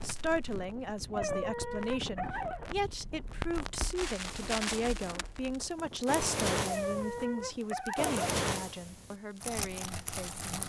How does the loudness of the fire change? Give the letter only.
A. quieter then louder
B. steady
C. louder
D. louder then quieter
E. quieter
C.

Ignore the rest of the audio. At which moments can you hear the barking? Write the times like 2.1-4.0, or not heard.
1.1-2.7, 6.7-8.2.